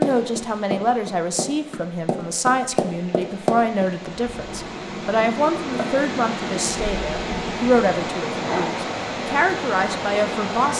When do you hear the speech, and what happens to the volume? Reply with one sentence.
You can hear the speech from 0.0 to 10.7 s, at a steady volume.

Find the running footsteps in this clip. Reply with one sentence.
The running footsteps can be heard from 0.0 to 3.9 s.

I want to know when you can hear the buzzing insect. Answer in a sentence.
You can hear the buzzing insect from 4.2 to 10.7 s.